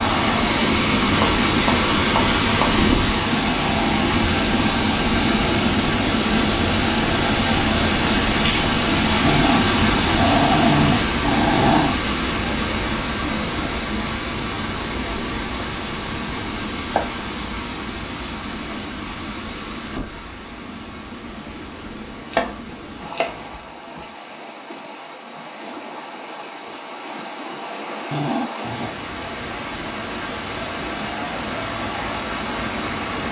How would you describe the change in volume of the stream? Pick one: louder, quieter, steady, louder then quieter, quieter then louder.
quieter then louder.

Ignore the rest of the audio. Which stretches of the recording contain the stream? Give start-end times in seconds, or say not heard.
0.0-33.2.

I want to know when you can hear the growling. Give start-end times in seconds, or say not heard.
9.2-12.0, 28.1-28.9.